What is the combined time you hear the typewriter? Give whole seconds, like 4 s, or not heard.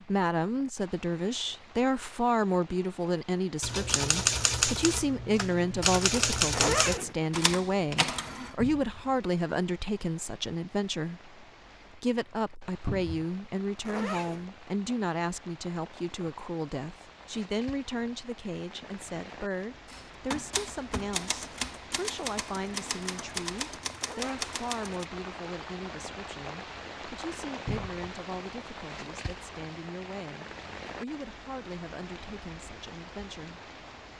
10 s.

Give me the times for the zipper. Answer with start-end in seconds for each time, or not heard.
6.5-7.2, 13.8-14.4, 23.9-24.4.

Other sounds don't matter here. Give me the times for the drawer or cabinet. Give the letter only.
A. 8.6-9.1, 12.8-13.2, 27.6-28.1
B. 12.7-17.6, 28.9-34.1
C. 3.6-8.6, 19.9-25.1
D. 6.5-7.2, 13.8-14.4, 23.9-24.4
A.